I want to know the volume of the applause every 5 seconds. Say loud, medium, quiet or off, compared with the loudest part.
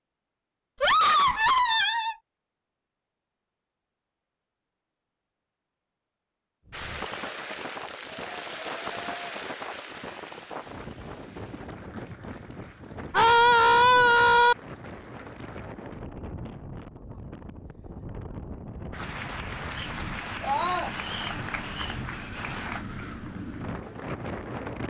off, loud, quiet, loud, loud.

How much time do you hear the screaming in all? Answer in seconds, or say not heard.
3 s.